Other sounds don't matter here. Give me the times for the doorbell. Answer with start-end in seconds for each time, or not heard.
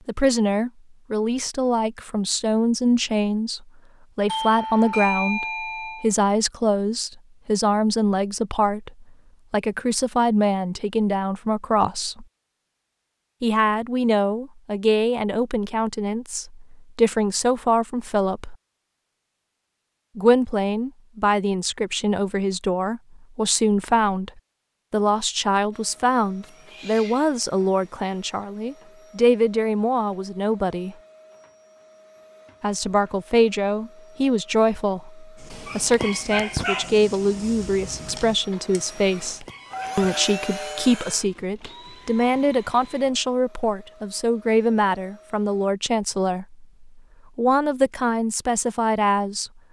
4.2-6.1, 39.7-41.0.